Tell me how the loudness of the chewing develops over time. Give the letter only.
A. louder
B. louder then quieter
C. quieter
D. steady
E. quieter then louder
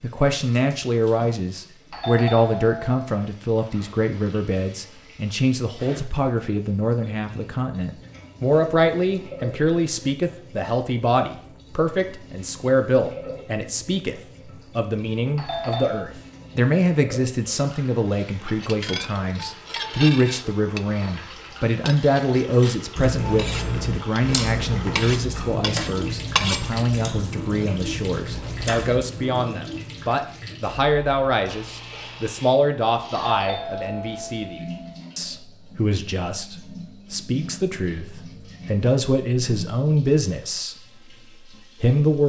C.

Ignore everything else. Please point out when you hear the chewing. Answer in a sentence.
The chewing can be heard from 22.9 to 29.1 s.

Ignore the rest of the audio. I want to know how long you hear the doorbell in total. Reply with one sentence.
You can hear the doorbell for 4 seconds altogether.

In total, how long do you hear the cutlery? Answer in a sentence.
The cutlery can be heard for 8 seconds in total.